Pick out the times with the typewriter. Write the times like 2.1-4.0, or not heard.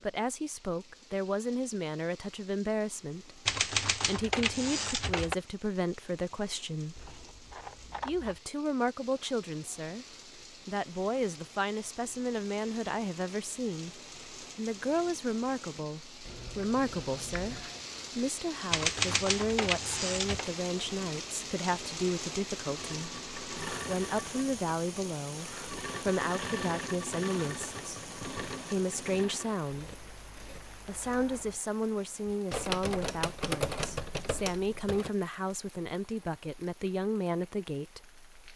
3.5-5.3, 18.7-20.5, 32.5-35.1.